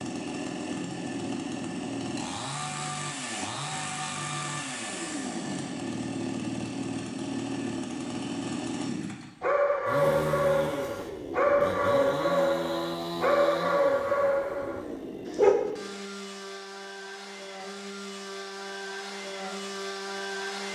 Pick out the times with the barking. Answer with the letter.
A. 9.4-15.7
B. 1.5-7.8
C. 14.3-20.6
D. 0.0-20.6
A.